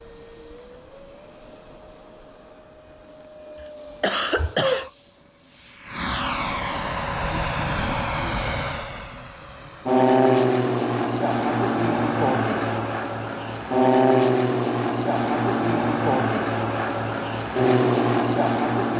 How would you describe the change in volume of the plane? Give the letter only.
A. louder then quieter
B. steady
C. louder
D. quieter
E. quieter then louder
C.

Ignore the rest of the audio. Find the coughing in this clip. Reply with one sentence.
The coughing can be heard from 3.6 to 4.9 s.